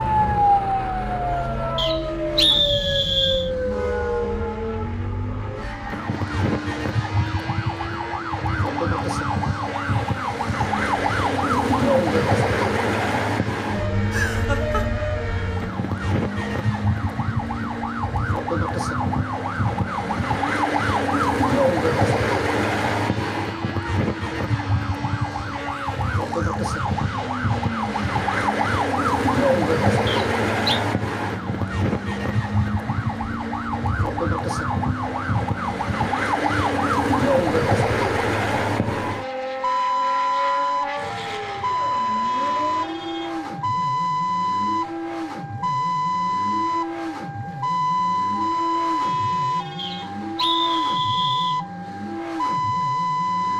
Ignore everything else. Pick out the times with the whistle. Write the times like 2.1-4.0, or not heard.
1.8-3.5, 30.1-30.8, 49.8-51.6.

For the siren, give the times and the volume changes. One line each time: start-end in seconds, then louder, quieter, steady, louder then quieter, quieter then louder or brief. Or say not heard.
0.0-53.5 steady.